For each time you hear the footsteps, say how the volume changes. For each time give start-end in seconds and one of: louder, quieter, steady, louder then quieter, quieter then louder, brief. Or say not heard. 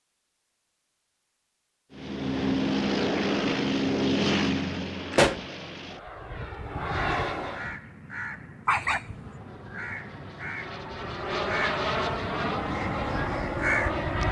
not heard.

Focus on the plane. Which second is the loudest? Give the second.
4 s.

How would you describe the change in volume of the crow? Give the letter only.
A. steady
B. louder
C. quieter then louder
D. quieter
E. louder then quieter
B.